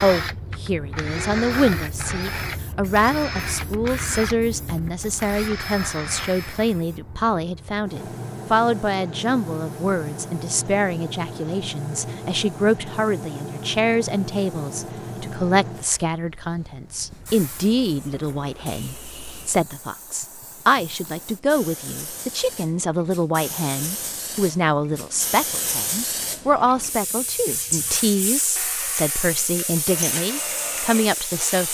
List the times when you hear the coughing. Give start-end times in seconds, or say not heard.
not heard.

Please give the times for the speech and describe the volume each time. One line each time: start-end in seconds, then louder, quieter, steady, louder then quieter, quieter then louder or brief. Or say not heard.
0.0-31.6 steady.